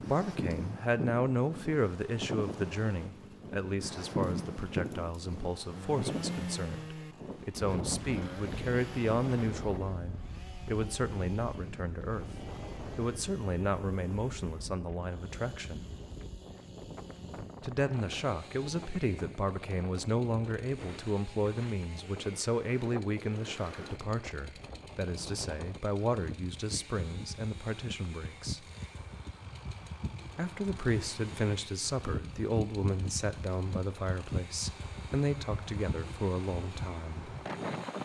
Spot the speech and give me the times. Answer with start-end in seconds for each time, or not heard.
0.1-12.2, 12.9-15.8, 17.6-28.6, 30.4-37.3.